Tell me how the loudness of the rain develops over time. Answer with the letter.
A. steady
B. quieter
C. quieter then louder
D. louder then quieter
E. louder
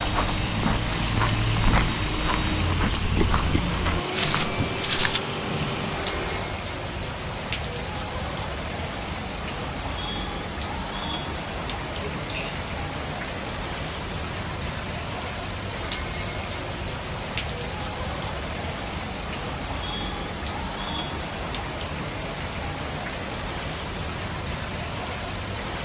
A.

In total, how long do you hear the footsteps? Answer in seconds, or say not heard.
5 s.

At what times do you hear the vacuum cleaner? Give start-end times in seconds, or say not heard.
0.0-6.6.